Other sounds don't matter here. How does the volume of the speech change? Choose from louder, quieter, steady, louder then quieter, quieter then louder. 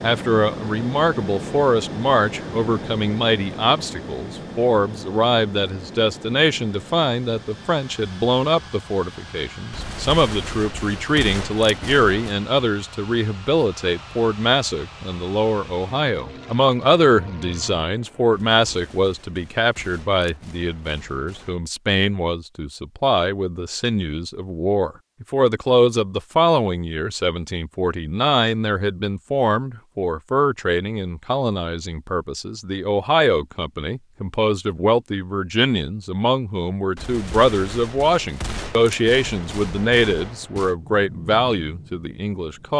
steady.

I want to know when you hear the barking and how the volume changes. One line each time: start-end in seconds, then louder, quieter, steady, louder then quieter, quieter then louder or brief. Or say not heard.
not heard.